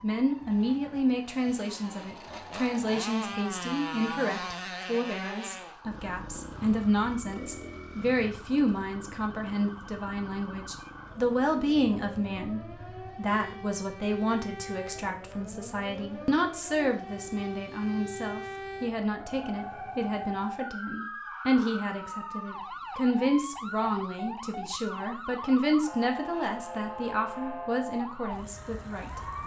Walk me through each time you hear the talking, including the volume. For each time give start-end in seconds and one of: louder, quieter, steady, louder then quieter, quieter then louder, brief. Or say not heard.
0.0-29.2 steady.